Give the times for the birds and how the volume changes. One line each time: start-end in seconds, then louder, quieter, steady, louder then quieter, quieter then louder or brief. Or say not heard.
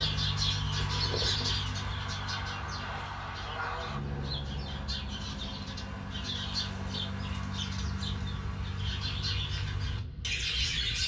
0.0-11.0 quieter then louder.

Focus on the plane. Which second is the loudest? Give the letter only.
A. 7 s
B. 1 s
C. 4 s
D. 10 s
C.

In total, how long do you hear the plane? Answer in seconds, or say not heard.
11 s.